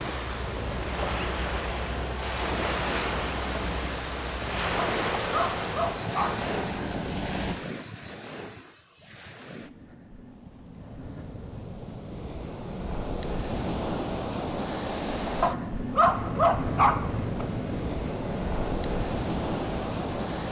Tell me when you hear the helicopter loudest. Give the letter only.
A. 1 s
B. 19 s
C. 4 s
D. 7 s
D.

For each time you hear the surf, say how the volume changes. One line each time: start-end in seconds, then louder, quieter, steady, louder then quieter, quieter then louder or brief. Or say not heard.
0.0-20.4 quieter then louder.